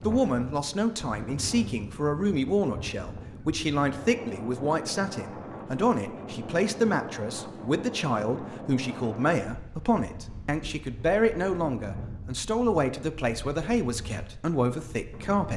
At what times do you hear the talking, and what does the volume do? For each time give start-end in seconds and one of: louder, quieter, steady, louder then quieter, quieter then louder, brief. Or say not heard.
0.0-15.5 steady.